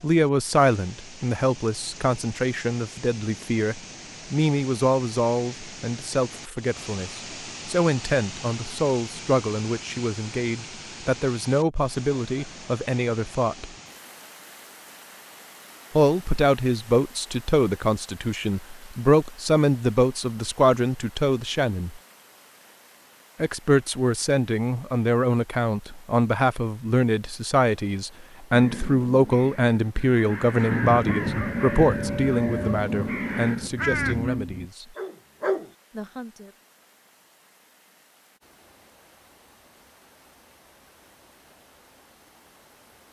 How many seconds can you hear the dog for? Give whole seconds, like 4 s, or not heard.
5 s.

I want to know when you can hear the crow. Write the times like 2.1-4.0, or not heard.
28.5-34.2.